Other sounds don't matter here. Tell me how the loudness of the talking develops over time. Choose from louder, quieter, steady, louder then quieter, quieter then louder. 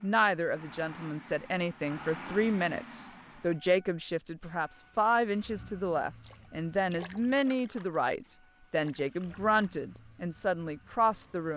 steady.